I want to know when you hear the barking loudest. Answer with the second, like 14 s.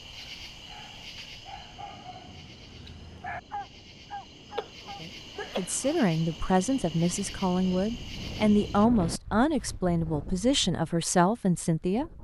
3 s.